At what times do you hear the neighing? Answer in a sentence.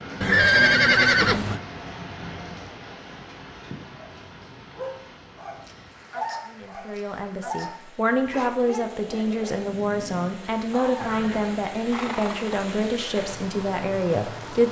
The neighing can be heard from 0.2 to 1.6 s and from 11.0 to 12.7 s.